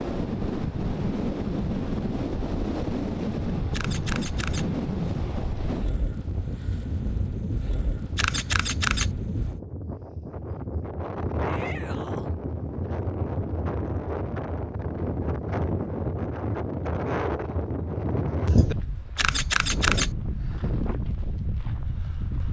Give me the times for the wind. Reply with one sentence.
The wind can be heard from 0.0 to 22.4 s.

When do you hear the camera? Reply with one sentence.
The camera can be heard from 3.7 to 4.7 s, from 8.2 to 9.1 s and from 19.1 to 20.1 s.